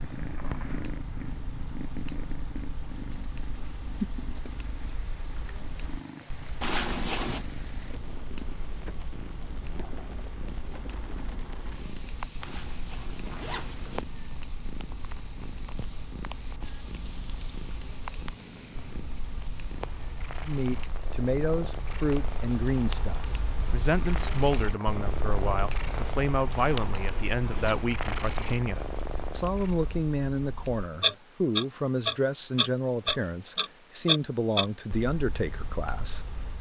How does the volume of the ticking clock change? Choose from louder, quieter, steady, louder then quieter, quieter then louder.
louder.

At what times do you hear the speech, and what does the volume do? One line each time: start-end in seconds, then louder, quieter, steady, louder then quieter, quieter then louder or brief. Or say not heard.
20.4-36.5 steady.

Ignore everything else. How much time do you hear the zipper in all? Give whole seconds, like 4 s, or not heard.
4 s.